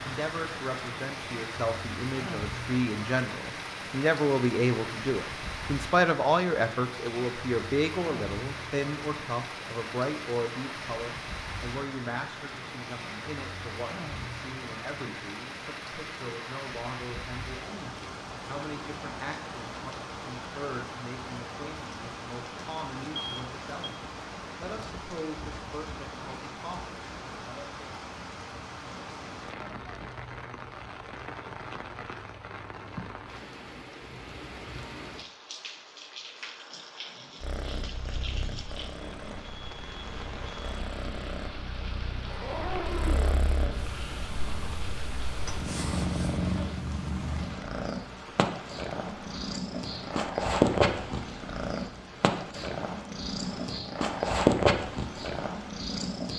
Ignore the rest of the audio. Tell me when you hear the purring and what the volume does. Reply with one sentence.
The purring can be heard from 37.4 to 56.3 s, getting louder.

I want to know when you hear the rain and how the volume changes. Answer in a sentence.
The rain can be heard from 0.0 to 56.3 s, getting quieter.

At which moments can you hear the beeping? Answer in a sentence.
The beeping can be heard from 23.1 to 23.9 s.